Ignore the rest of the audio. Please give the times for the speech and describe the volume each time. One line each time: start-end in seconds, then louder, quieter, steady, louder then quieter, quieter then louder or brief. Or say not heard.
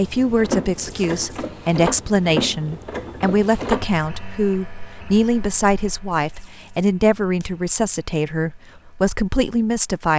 0.0-10.1 steady.